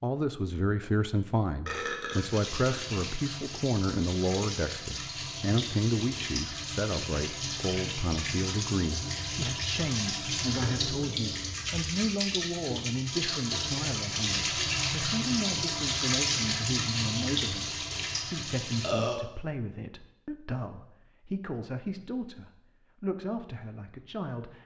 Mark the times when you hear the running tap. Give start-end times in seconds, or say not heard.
2.1-18.9.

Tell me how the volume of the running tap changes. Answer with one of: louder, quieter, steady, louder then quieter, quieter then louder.
louder.